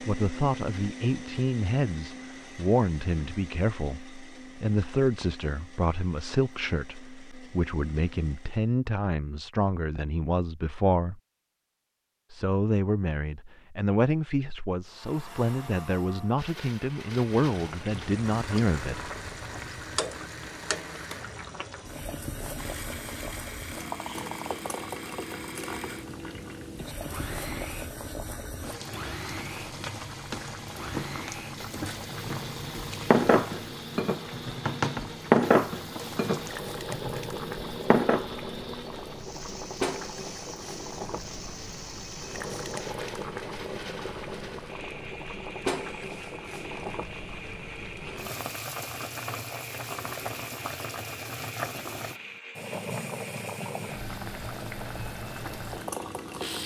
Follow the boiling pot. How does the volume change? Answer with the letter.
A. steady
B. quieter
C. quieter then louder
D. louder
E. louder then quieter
A.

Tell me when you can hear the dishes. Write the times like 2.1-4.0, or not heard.
31.9-38.2.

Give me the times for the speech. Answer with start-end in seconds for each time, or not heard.
0.0-11.2, 12.3-19.0.